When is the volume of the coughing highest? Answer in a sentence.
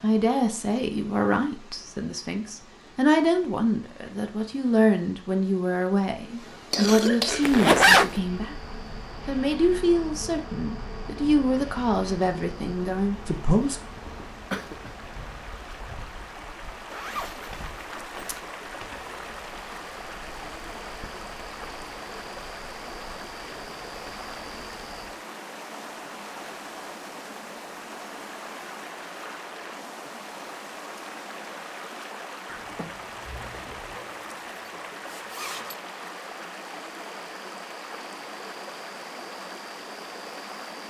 The volume of the coughing peaks at 7 seconds.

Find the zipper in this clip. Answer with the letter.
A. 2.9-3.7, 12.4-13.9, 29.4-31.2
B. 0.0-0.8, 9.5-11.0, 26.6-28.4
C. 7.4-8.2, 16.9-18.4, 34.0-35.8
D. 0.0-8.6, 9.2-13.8
C.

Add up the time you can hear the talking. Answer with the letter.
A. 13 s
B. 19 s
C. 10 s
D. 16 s
A.